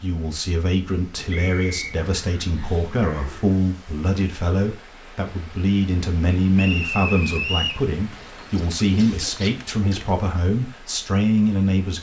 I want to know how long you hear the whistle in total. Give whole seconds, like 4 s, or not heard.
2 s.